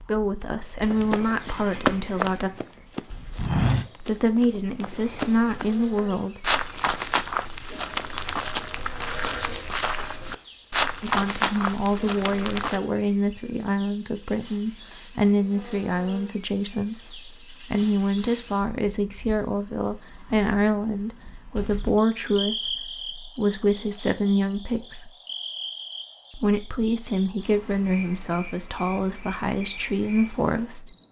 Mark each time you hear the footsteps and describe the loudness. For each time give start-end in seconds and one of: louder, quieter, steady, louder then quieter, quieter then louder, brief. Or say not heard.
0.8-12.8 steady.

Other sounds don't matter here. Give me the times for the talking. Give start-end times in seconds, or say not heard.
0.1-2.5, 4.0-6.5, 11.0-25.1, 26.4-30.9.